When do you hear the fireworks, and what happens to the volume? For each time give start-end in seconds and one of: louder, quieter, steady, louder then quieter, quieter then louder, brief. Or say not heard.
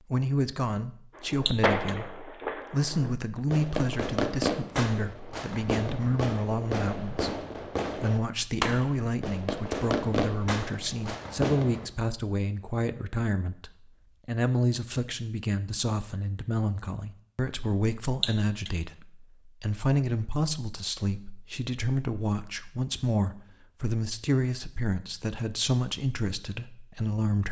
1.1-11.9 steady.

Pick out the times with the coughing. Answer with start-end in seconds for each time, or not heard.
1.4-1.9, 18.2-18.7.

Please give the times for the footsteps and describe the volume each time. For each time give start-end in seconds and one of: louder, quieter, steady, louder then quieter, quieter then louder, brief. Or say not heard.
not heard.